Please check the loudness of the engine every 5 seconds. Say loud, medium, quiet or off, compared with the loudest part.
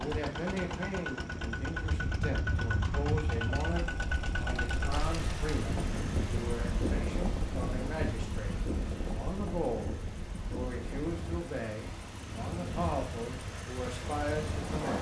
loud, medium, medium.